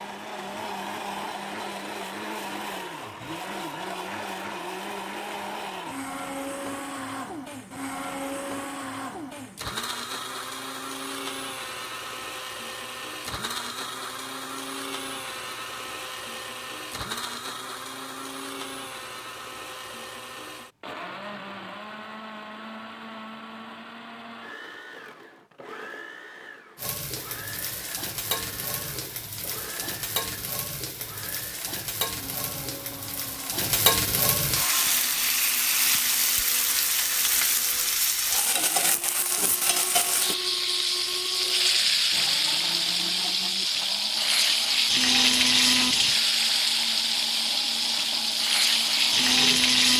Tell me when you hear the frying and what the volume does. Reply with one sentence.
You can hear the frying from 26.8 to 49.9 s, getting louder.